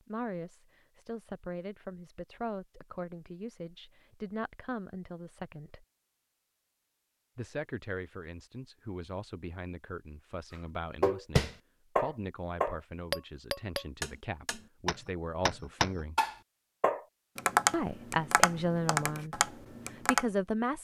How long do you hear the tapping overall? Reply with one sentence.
You can hear the tapping for 9 seconds altogether.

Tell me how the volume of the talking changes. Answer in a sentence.
The volume of the talking goes up.